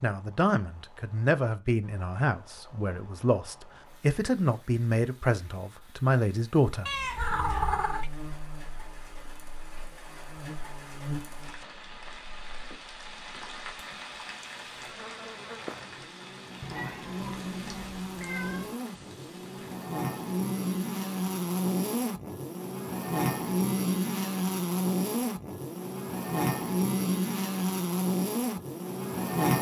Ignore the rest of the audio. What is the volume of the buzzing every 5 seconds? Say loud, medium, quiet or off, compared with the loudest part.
off, quiet, quiet, medium, loud, loud.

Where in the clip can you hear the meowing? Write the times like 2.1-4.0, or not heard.
6.8-8.1, 16.6-18.8.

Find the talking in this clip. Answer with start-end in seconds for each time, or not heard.
0.0-7.7.